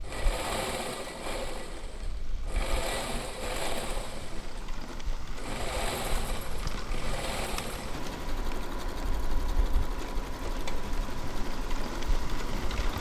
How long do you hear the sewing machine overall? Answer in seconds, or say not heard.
13 s.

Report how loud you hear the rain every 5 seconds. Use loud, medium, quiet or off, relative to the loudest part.
medium, loud, loud.